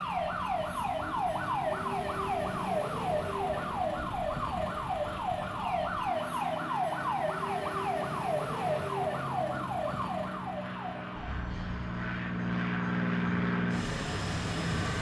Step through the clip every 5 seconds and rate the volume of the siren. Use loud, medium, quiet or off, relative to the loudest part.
loud, loud, medium.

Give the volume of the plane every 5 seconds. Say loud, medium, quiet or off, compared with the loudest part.
quiet, medium, loud.